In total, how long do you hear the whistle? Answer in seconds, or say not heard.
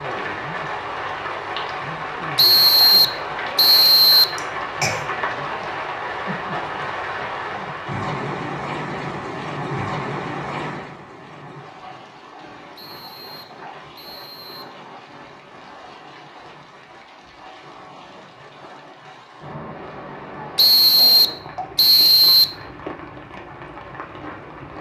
6 s.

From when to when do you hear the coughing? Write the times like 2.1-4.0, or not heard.
4.3-5.0.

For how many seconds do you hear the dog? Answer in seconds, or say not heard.
not heard.